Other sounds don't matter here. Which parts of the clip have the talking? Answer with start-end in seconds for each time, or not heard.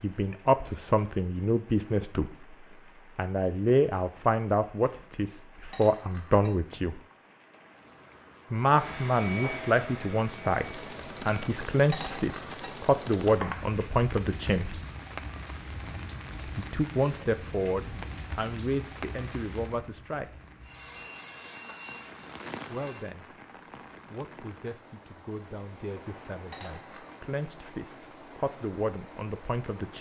0.0-2.5, 3.1-7.0, 8.5-14.8, 16.6-20.4, 22.6-23.4, 24.1-29.9.